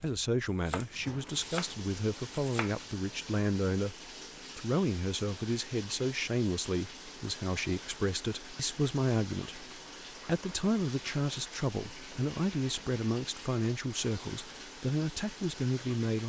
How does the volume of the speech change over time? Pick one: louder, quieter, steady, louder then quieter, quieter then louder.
steady.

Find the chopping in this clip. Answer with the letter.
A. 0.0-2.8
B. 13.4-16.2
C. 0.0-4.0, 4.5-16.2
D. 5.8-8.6
A.